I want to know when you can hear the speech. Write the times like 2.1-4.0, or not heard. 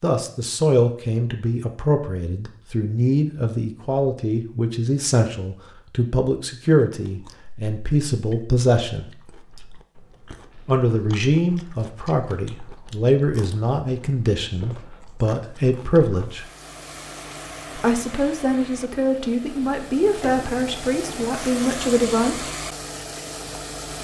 0.0-9.1, 10.7-16.4, 17.8-22.4.